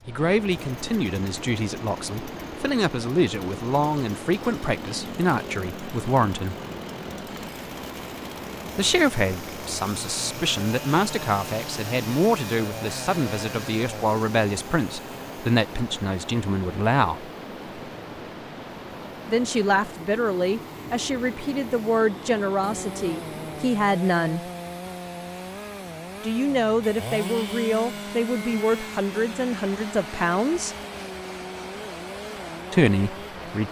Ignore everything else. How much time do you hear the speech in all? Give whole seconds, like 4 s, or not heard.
26 s.